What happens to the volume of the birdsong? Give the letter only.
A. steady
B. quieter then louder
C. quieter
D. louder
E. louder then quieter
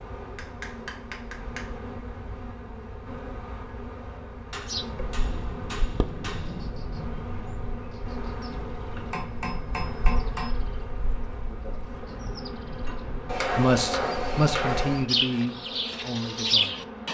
B.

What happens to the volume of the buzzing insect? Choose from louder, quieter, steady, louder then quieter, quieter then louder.
steady.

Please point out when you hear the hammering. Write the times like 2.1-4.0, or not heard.
0.3-1.6, 4.5-6.7, 9.1-10.6, 13.2-15.1.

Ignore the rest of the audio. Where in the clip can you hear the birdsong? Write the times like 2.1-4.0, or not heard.
4.7-17.0.